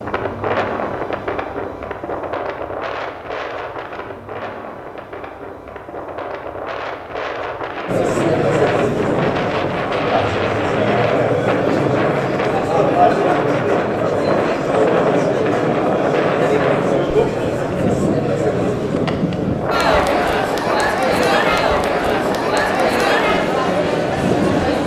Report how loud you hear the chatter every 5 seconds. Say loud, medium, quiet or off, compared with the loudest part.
off, loud, loud, loud, loud.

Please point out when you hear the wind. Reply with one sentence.
The wind can be heard from 0.0 to 24.8 s.